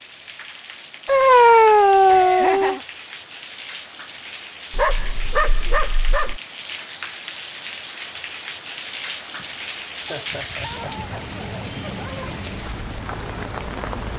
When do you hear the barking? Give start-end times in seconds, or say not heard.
1.1-2.8, 4.7-6.4, 10.1-12.4.